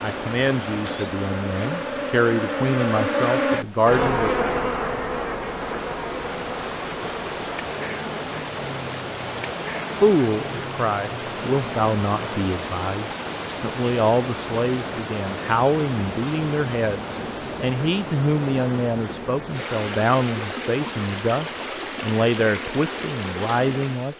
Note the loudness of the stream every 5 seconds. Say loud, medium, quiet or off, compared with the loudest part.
medium, loud, loud, loud, loud.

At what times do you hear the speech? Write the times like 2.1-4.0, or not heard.
0.0-4.3, 10.0-24.1.